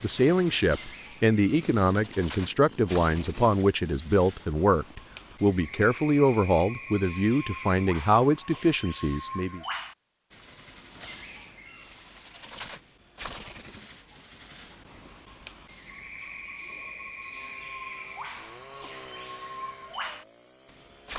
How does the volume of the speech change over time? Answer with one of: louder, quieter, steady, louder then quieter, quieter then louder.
steady.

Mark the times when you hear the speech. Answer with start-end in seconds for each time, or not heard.
0.0-9.6.